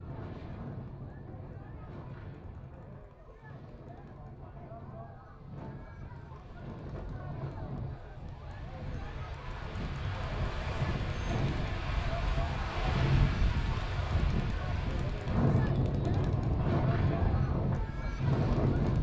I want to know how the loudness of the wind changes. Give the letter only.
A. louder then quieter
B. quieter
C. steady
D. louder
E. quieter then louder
D.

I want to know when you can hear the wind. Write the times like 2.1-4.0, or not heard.
0.0-18.9.